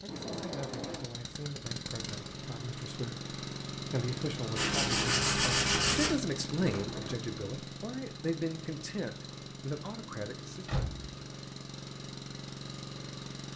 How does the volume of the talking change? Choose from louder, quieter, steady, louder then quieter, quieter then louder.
louder then quieter.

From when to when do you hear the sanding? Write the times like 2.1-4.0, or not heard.
4.5-6.1.